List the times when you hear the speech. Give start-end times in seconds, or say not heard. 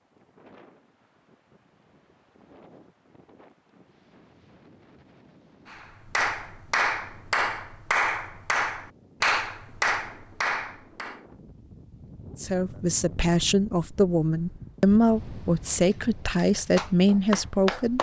12.3-17.9.